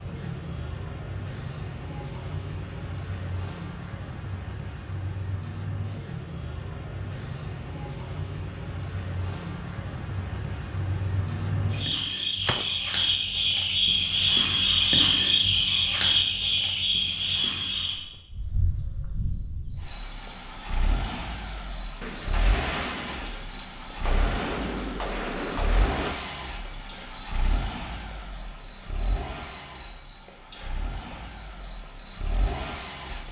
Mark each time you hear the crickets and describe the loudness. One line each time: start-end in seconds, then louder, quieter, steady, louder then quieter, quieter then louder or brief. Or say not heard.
0.0-33.2 louder then quieter.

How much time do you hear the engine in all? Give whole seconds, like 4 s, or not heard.
13 s.